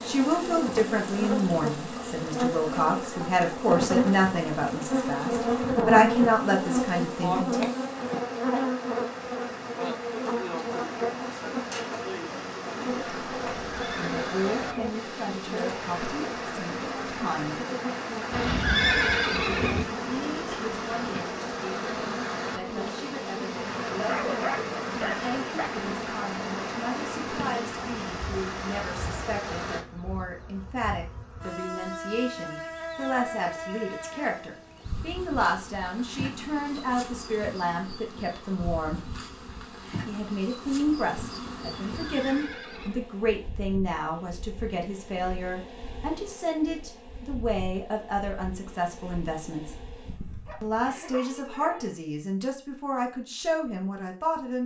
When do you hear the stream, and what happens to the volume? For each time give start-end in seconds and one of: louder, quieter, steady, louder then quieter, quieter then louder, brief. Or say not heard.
0.0-29.9 louder.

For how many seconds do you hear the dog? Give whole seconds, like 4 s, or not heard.
3 s.